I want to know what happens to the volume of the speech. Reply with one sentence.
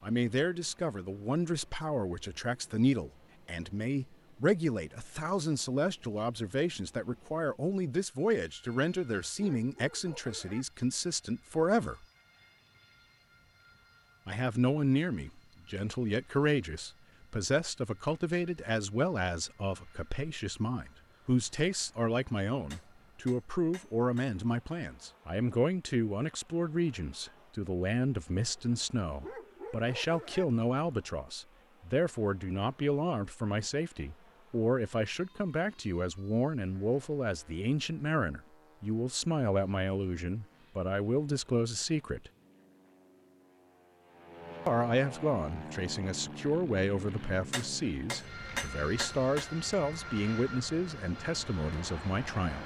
The volume of the speech stays about the same.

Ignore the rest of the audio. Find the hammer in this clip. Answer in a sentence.
The hammer can be heard from 22.7 to 24.3 s and from 47.5 to 49.5 s.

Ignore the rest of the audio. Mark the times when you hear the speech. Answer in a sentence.
You can hear the speech from 0.0 to 12.1 s, from 14.2 to 42.3 s and from 44.6 to 52.6 s.